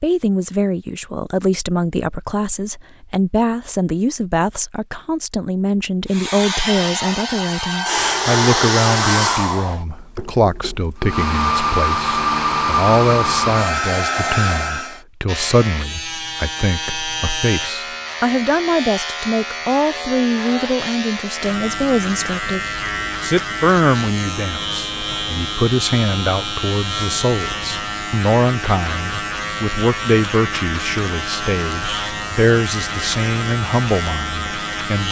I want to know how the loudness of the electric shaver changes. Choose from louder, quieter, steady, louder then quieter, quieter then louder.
steady.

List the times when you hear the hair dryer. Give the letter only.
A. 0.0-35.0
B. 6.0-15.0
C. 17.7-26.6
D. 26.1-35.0
B.